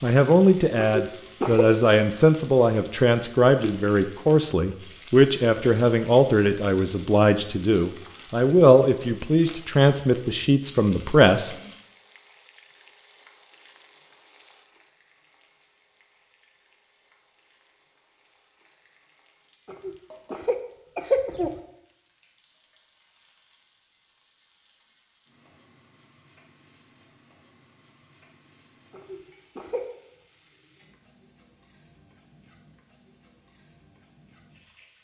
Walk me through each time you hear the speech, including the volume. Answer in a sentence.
The speech can be heard from 0.0 to 11.6 s, at a steady volume.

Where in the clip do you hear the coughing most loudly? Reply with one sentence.
The loudest moment of the coughing is at 21 seconds.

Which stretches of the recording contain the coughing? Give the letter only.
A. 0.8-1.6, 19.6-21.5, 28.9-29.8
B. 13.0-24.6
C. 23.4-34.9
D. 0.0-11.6
A.